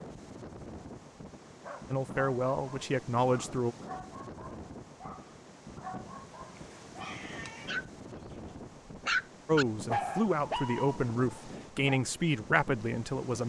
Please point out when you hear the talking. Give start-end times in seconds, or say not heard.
1.9-3.8, 9.4-13.4.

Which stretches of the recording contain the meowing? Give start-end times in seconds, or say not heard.
6.5-7.8.